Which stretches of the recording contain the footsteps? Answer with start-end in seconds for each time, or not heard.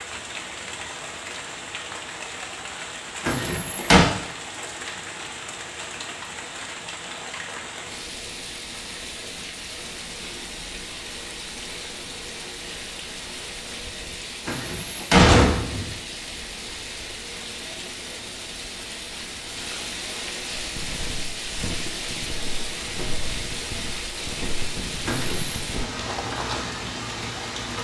20.6-26.8.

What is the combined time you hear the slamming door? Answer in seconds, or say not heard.
3 s.